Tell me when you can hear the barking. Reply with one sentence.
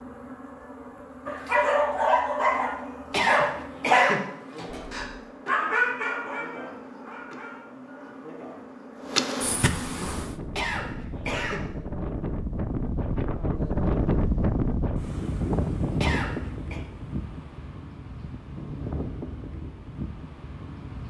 The barking can be heard from 1.2 to 8.1 s.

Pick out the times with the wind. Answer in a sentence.
The wind can be heard from 9.9 to 21.0 s.